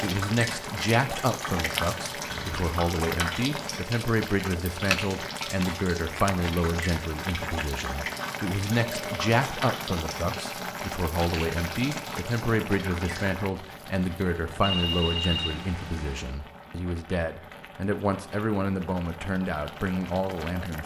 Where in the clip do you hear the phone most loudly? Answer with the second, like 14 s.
15 s.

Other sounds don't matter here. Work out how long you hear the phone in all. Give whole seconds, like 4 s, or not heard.
3 s.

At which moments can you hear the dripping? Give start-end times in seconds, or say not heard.
0.0-13.4.